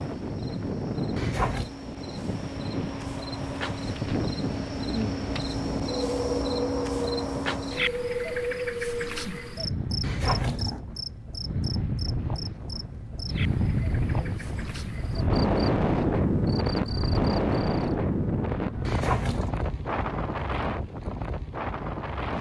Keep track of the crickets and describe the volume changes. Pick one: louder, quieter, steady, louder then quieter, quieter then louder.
louder then quieter.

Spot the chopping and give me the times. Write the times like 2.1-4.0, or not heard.
not heard.